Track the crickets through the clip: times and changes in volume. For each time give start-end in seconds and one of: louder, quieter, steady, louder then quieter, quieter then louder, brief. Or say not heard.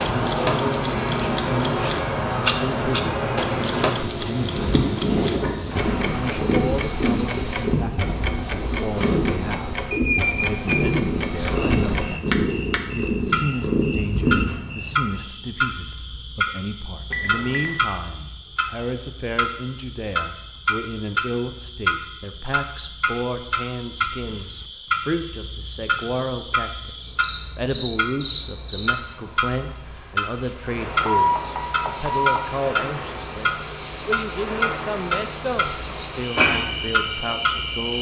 0.0-37.9 quieter then louder.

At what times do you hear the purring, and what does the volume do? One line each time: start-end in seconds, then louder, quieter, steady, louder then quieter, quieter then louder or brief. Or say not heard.
4.5-14.6 steady.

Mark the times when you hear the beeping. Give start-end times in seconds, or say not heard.
9.9-10.8, 17.1-17.8, 31.1-32.4.